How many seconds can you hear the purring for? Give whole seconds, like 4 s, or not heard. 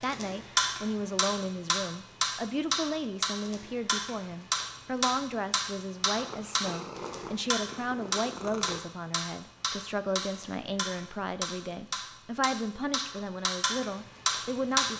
3 s.